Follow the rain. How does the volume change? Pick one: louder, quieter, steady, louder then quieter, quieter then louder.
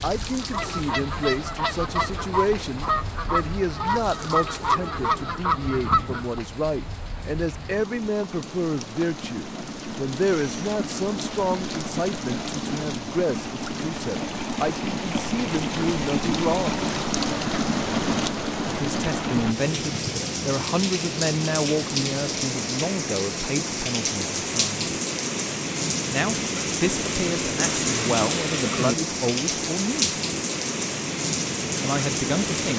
louder.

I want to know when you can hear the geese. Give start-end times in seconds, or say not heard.
0.4-6.3.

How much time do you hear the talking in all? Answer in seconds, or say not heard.
28 s.